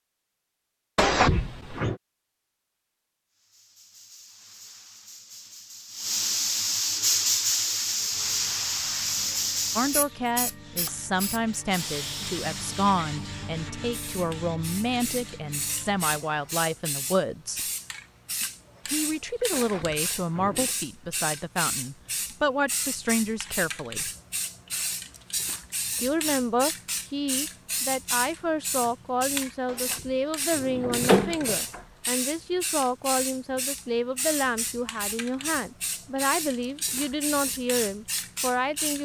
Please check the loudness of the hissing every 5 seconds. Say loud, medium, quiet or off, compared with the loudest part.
quiet, loud, medium, medium, medium, medium, medium, medium.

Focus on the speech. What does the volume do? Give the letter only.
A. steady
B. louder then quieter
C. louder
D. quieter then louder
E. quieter
A.